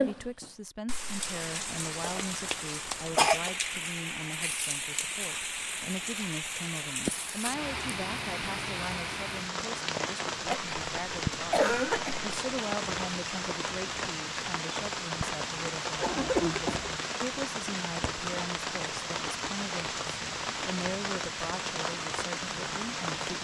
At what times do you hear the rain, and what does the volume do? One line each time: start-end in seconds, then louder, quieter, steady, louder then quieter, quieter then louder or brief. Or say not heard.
0.0-23.3 steady.